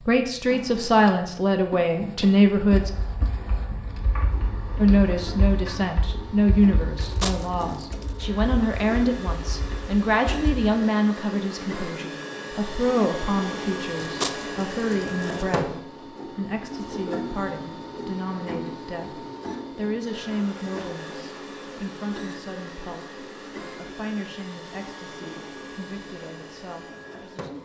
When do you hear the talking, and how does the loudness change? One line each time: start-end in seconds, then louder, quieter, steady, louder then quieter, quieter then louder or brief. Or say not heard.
0.1-2.9 brief
4.8-27.6 quieter.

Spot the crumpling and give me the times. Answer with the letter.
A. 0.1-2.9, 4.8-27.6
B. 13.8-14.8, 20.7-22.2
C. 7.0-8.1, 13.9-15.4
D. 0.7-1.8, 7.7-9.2
C.